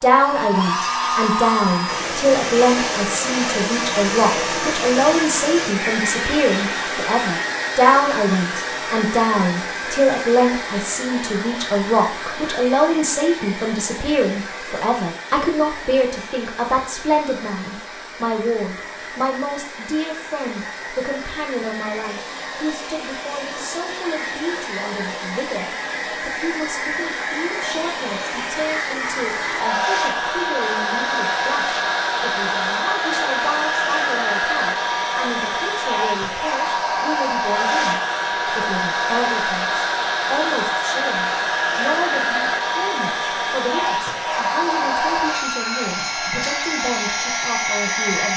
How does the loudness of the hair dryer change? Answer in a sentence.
The volume of the hair dryer goes down, then up.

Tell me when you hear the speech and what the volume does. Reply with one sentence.
You can hear the speech from 0.0 to 48.3 s, getting quieter.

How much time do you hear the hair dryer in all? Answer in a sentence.
The hair dryer can be heard for 48 seconds in total.